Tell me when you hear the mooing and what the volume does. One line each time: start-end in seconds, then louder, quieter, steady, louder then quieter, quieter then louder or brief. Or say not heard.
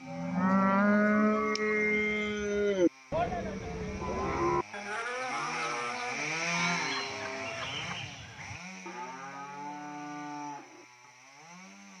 0.0-11.2 quieter.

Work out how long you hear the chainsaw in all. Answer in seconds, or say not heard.
12 s.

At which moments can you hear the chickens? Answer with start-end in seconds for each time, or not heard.
6.2-8.2.